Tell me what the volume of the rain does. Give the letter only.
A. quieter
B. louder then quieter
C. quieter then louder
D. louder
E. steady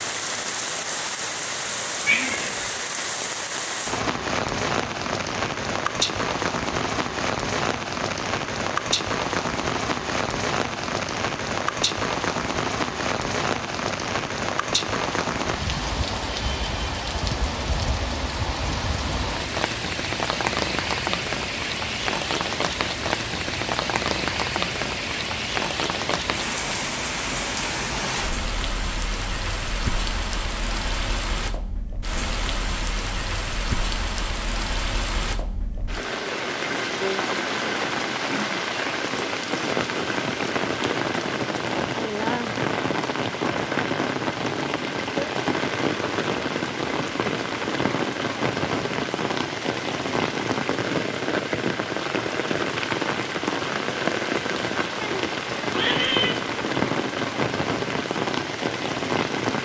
E.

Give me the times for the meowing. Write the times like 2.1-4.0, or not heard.
2.0-2.6, 55.0-56.4.